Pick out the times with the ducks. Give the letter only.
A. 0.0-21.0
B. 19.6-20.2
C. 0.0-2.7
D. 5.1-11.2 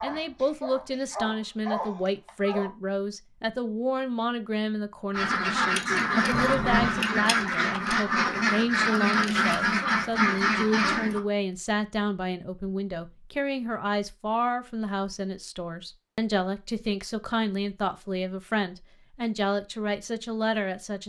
D.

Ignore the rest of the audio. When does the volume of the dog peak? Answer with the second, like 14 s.
2 s.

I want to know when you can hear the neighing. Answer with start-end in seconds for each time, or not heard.
6.3-7.0.